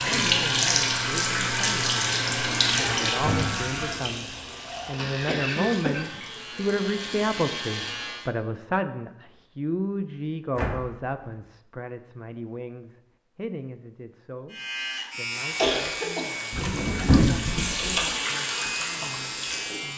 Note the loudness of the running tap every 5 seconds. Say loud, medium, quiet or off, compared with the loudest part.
loud, quiet, off, medium.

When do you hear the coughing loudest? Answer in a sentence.
The volume of the coughing peaks at 16 seconds.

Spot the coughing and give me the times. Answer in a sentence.
The coughing can be heard from 5.0 to 6.2 s and from 15.1 to 17.2 s.